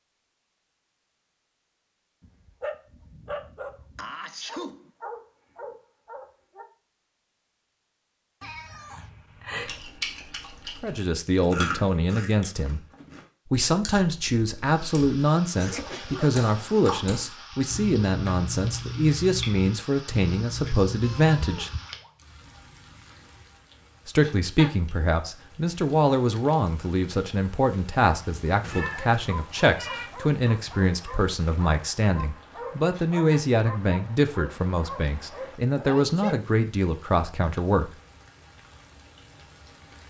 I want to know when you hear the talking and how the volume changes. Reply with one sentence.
You can hear the talking briefly from 10.8 to 12.8 s; from 13.5 to 21.7 s, at a steady volume; and from 24.1 to 37.9 s, at a steady volume.